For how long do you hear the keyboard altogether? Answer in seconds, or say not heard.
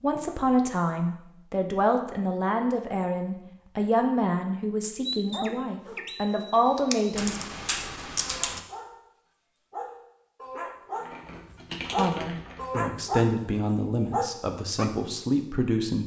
4 s.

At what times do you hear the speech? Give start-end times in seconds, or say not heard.
0.0-7.4, 11.9-16.0.